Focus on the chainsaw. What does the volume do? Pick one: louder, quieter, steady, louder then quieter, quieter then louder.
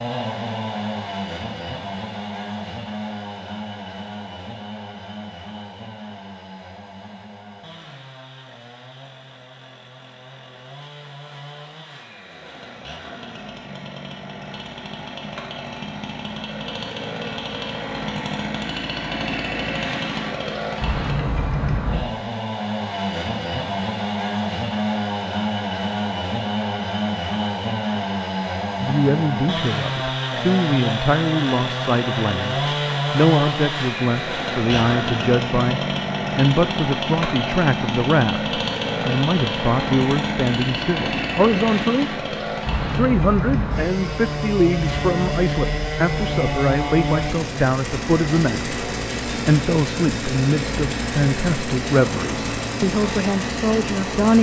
louder.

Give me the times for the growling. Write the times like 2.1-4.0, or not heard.
not heard.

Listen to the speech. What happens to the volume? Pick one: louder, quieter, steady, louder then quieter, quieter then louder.
steady.